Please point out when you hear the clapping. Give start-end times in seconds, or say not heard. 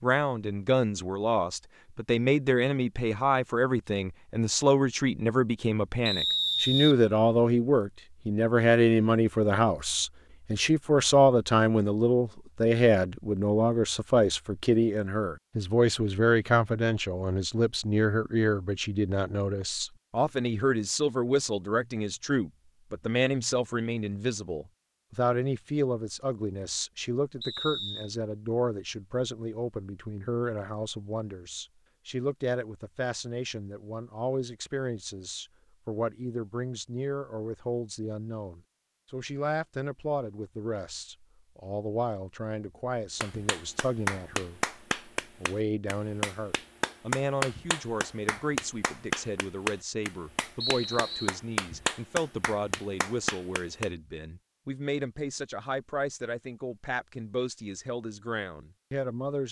43.2-53.9.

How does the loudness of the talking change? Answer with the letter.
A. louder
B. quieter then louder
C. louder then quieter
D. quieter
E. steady
D.